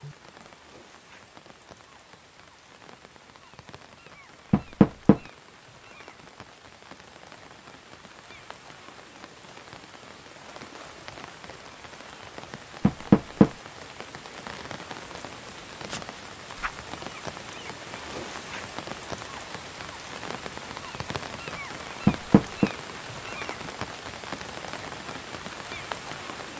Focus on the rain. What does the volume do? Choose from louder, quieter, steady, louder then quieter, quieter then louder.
louder.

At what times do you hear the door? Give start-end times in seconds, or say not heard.
4.5-5.2, 12.8-13.5, 22.1-22.7.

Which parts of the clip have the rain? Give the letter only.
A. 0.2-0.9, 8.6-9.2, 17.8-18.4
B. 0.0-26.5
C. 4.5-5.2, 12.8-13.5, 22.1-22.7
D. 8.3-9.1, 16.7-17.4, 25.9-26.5
B.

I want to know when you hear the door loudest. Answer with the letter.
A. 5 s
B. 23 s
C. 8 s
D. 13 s
D.